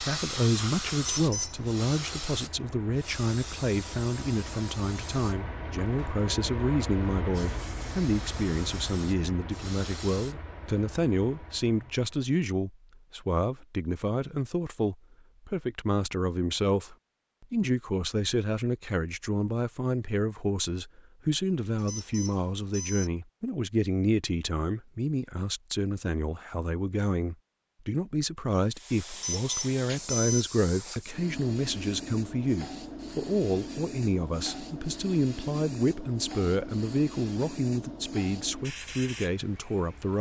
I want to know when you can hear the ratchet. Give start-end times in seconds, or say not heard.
not heard.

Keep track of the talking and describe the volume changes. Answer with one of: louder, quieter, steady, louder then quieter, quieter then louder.
steady.